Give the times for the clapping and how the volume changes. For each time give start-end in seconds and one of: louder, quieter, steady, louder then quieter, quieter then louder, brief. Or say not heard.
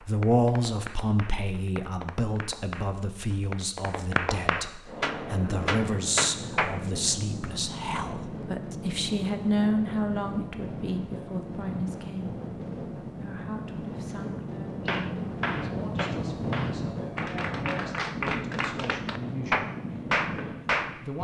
0.0-6.8 louder
14.8-21.0 louder.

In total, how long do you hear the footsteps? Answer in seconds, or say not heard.
not heard.